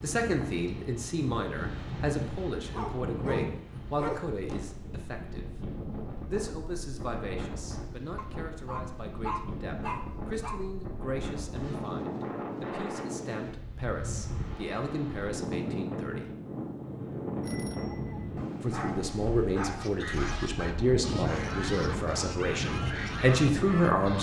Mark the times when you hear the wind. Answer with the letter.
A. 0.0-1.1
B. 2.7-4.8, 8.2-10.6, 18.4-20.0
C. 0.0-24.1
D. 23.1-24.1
C.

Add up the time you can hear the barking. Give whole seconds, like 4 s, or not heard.
6 s.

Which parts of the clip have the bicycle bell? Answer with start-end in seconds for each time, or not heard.
17.4-18.4.